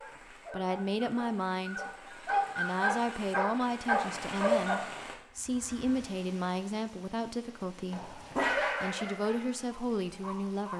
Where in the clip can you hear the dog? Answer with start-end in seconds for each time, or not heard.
0.0-4.8, 7.9-10.7.